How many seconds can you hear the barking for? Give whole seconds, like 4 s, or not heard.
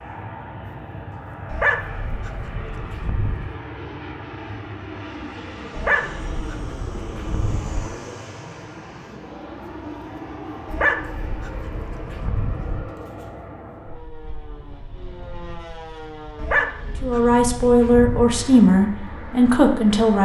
8 s.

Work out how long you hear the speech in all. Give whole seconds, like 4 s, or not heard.
3 s.